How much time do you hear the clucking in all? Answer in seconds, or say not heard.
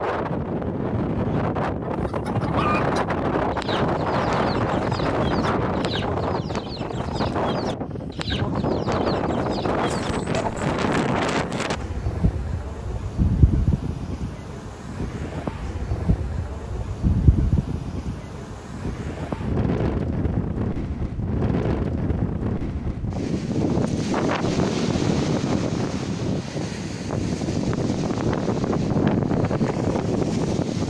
9 s.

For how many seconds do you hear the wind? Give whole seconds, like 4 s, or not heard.
31 s.